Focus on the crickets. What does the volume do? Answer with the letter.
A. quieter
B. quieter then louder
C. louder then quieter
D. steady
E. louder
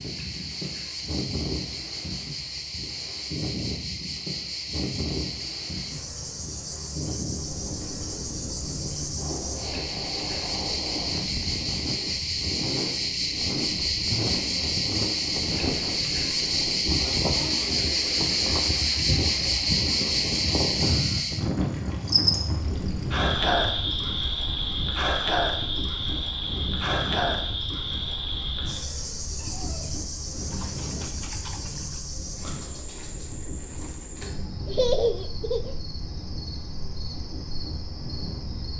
C.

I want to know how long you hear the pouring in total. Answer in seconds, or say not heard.
3 s.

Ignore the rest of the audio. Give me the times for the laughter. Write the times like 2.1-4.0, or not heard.
34.6-35.8.